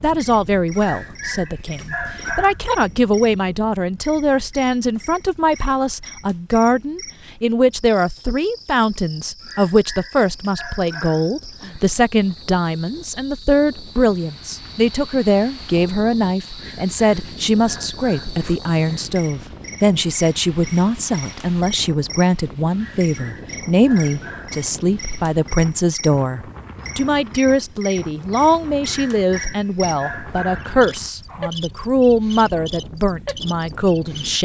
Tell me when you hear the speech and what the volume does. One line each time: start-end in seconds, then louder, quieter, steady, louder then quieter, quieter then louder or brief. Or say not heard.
0.0-34.4 steady.